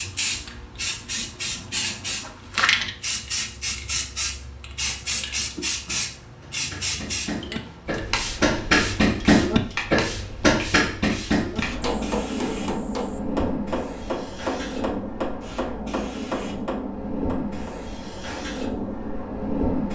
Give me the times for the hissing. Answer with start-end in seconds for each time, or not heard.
0.0-19.8.